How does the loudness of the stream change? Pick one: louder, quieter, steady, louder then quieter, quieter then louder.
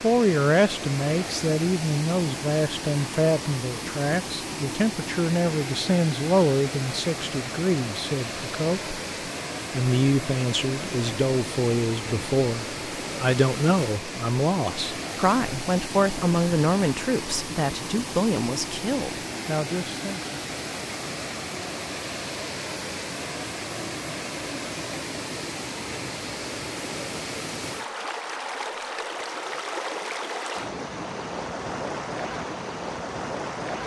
steady.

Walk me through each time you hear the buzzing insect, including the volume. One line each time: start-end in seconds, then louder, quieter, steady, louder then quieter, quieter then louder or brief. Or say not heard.
not heard.